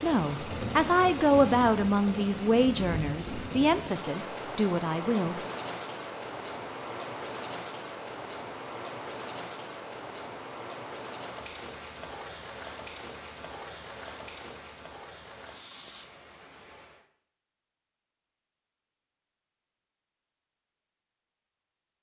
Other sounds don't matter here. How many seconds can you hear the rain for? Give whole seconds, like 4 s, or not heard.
17 s.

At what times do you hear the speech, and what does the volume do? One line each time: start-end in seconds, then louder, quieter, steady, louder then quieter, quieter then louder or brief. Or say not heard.
0.0-5.3 quieter.